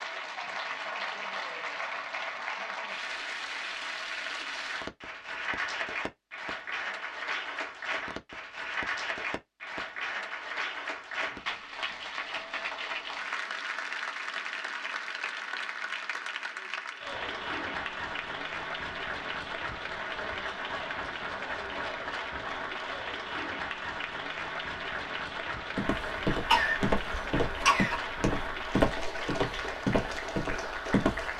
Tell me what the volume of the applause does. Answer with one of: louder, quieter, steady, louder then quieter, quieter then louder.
steady.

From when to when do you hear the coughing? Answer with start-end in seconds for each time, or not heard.
26.5-28.0.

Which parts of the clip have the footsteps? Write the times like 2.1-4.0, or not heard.
25.8-31.3.